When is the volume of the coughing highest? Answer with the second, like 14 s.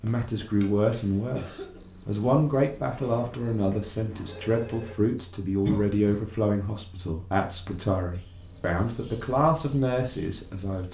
6 s.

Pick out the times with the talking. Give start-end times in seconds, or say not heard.
0.0-10.8.